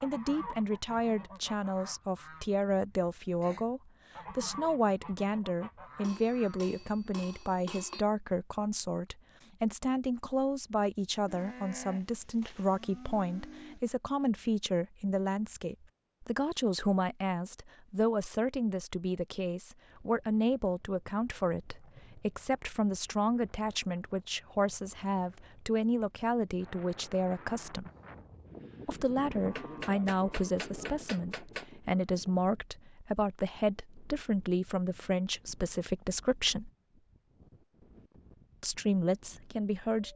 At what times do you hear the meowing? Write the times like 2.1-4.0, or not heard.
not heard.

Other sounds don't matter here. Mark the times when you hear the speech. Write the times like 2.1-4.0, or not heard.
0.0-27.9, 28.9-36.7, 38.6-40.1.